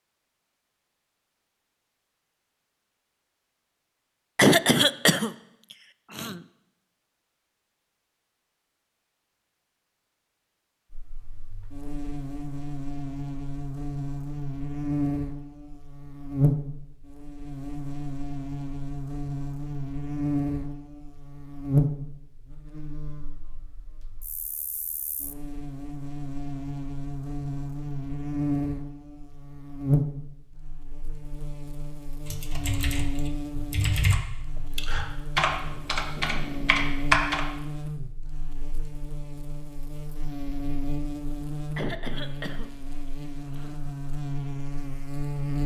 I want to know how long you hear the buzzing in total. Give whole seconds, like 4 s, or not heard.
35 s.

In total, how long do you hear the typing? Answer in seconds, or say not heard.
5 s.